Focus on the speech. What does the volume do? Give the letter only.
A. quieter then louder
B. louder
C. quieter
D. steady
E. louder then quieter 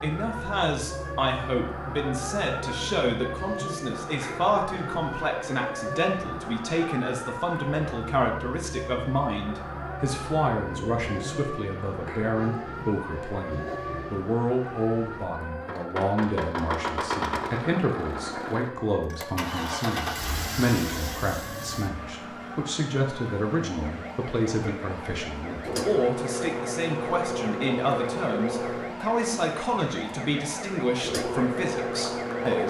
D.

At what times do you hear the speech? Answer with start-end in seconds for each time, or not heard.
0.0-32.6.